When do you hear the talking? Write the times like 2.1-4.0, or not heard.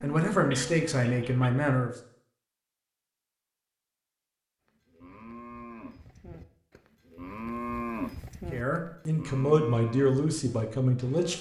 0.0-1.9, 8.5-11.3.